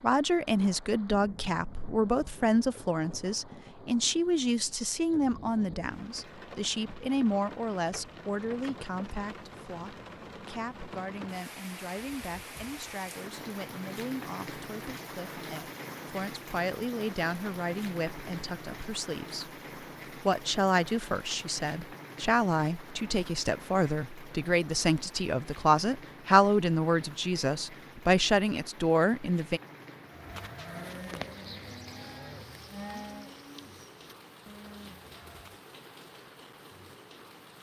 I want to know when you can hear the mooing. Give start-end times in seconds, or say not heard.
30.1-35.6.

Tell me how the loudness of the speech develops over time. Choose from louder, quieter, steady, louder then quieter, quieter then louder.
quieter then louder.